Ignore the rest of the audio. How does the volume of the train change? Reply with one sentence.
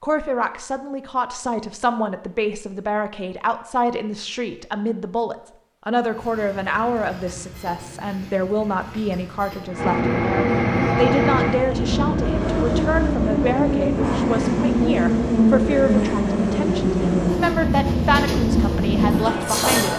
The volume of the train goes up.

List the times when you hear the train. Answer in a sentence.
You can hear the train from 6.0 to 19.9 s.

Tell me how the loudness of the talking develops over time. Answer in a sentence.
The loudness of the talking stays about the same.